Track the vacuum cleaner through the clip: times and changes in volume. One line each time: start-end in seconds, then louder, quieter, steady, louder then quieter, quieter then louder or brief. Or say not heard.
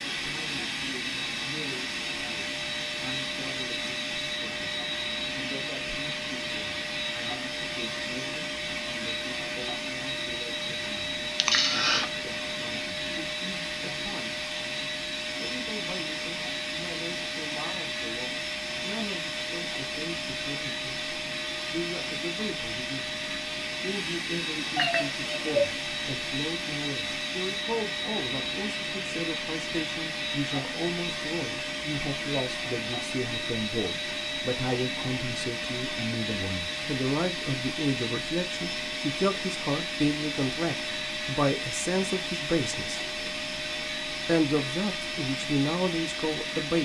0.0-46.8 steady.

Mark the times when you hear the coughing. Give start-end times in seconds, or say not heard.
11.4-12.1.